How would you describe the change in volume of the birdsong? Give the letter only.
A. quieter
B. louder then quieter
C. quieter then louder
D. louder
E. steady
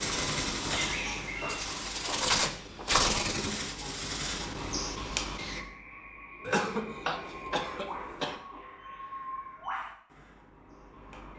A.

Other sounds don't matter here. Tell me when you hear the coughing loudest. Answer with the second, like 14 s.
7 s.